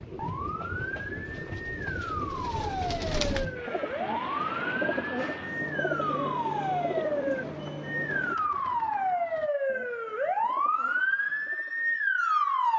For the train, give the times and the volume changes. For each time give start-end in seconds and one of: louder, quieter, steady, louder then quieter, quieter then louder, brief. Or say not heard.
0.0-8.3 steady.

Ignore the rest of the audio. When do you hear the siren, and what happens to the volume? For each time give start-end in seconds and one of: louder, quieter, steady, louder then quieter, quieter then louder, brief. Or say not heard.
0.0-12.7 louder.